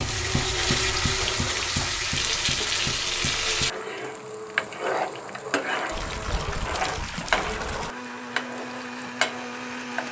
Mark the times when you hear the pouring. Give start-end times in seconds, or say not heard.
5.9-8.0.